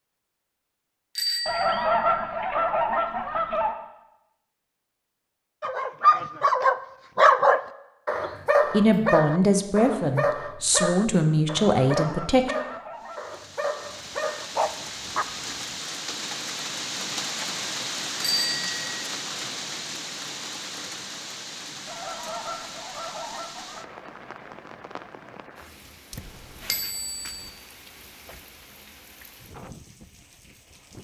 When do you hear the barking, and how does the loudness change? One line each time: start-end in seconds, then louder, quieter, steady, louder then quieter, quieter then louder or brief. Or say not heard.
5.6-15.8 quieter.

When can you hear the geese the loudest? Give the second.
2 s.